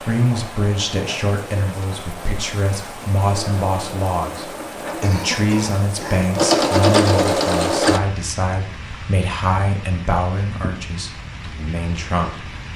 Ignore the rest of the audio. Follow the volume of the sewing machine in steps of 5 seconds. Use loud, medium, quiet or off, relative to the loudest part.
quiet, loud, off.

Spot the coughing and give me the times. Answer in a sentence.
The coughing can be heard from 4.8 to 6.3 s.